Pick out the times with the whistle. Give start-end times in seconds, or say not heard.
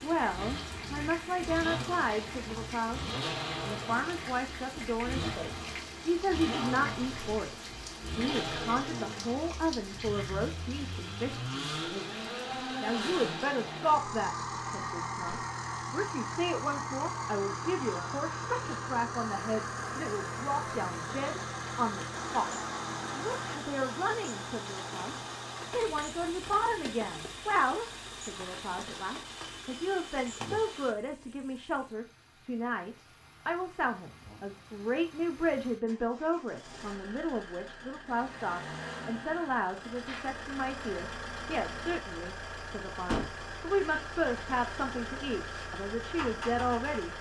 not heard.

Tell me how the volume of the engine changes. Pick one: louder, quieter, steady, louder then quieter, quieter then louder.
quieter then louder.